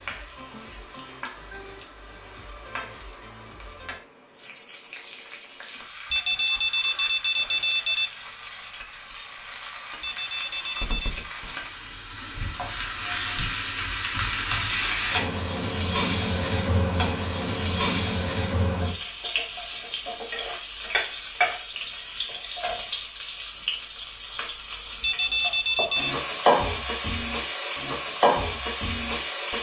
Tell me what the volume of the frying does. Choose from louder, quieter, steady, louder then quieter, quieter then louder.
louder.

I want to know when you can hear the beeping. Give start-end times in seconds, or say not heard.
6.1-8.1, 10.0-11.2, 25.0-26.2.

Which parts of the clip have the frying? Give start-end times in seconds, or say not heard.
0.0-29.5.